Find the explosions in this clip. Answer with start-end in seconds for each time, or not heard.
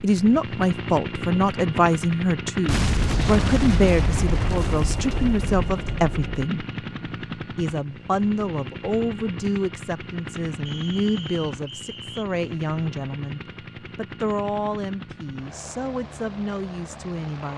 2.6-6.5.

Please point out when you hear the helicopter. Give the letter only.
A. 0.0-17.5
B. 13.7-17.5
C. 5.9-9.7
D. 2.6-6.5
A.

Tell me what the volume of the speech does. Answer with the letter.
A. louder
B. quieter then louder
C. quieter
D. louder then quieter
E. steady
C.